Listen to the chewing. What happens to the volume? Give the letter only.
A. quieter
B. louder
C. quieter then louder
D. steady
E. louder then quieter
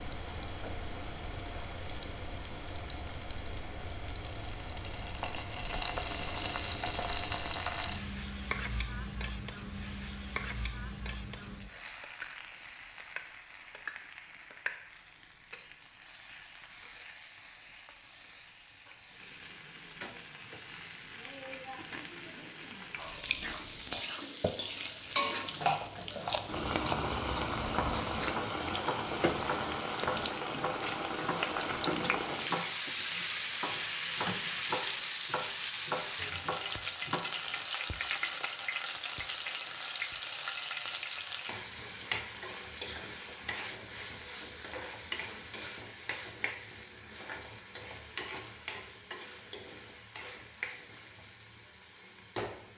E.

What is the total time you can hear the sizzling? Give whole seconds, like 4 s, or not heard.
53 s.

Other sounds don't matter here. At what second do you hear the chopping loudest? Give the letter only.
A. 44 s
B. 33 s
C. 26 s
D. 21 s
C.